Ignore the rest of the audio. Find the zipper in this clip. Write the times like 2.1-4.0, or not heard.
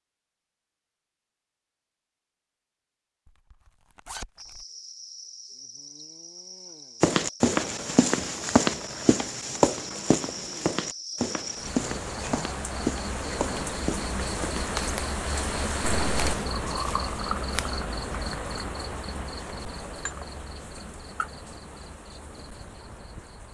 3.2-4.7, 11.8-13.8.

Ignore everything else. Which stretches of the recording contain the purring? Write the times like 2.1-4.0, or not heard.
not heard.